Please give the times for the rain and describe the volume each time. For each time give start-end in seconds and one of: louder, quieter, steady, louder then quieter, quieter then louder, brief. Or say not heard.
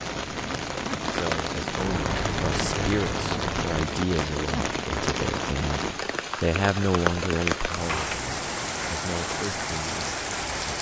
0.0-10.7 steady.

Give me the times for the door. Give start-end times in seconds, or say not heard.
1.8-3.7, 7.8-8.3.